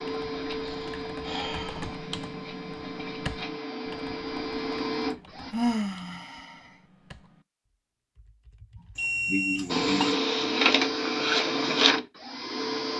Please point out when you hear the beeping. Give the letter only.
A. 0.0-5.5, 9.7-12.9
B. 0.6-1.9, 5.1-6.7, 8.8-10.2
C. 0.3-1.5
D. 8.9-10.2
D.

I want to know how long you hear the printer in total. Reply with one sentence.
You can hear the printer for 9 seconds altogether.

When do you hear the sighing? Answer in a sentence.
You can hear the sighing from 0.6 to 1.9 s, from 5.1 to 6.7 s and from 8.8 to 10.2 s.